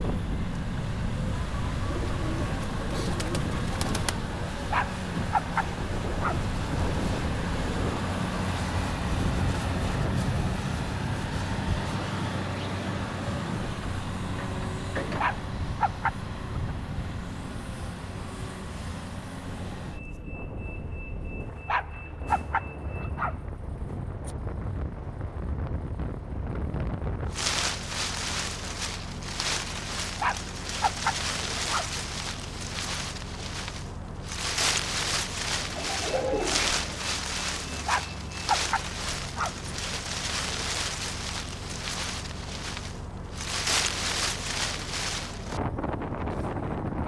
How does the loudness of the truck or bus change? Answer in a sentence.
The loudness of the truck or bus goes down.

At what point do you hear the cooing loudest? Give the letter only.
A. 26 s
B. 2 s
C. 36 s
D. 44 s
C.